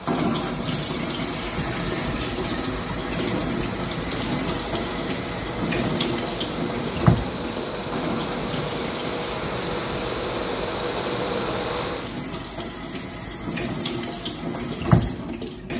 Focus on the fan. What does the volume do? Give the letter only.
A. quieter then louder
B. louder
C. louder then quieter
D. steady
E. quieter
B.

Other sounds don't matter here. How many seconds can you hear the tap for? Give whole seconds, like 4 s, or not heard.
16 s.